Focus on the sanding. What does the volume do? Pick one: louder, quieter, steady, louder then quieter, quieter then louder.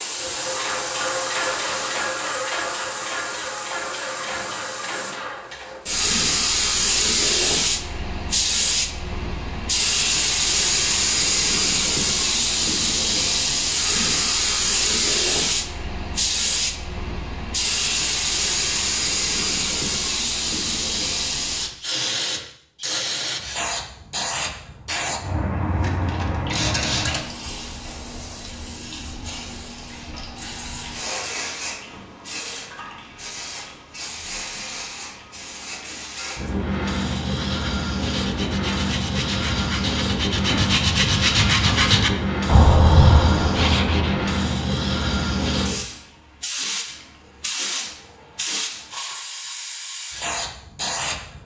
louder.